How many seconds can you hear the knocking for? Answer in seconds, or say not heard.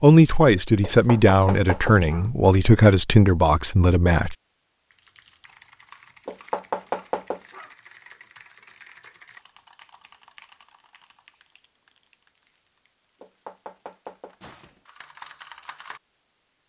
4 s.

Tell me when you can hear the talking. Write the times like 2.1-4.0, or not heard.
0.0-4.3.